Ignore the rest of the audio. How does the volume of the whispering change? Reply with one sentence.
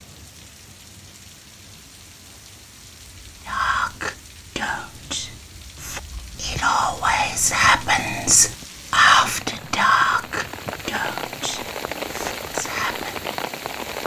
The loudness of the whispering goes up, then down.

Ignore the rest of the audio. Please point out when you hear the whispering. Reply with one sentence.
You can hear the whispering from 3.5 to 13.2 s.